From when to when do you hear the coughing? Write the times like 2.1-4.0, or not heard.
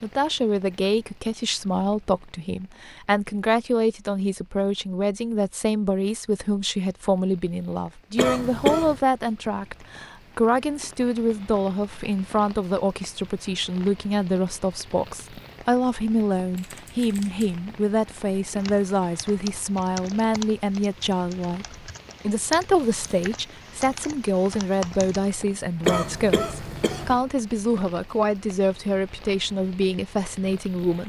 8.2-9.0, 25.9-27.2.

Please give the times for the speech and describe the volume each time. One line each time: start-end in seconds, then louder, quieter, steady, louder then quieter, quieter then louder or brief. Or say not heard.
0.0-31.0 steady.